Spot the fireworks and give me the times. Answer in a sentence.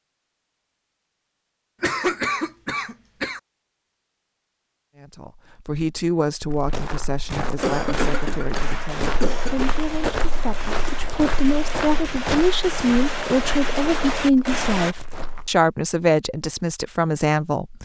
The fireworks can be heard from 7.5 to 14.9 s.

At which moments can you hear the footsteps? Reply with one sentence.
The footsteps can be heard from 6.5 to 15.5 s.